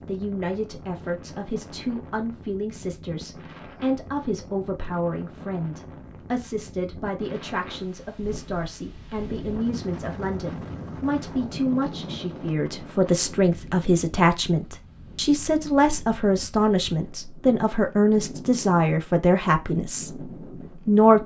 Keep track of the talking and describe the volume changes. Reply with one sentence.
The volume of the talking goes up.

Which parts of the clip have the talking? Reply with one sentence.
You can hear the talking from 0.1 to 21.2 s.